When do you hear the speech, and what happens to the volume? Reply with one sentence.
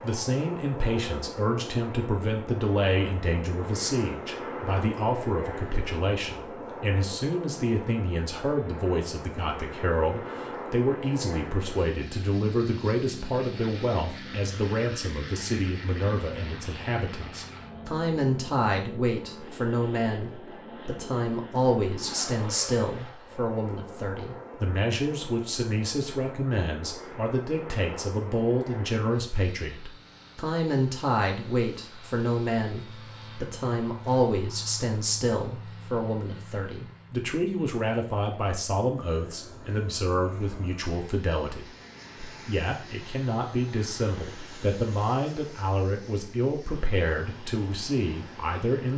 You can hear the speech from 0.0 to 48.9 s, at a steady volume.